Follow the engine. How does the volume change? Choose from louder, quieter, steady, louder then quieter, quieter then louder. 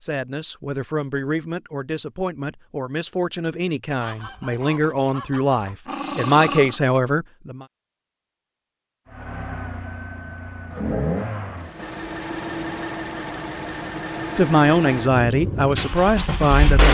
louder.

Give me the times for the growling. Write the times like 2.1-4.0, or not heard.
5.7-6.8.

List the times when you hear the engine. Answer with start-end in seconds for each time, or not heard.
9.1-16.9.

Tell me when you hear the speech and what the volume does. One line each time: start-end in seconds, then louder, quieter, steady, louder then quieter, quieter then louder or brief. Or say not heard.
0.0-7.7 louder
14.3-16.9 brief.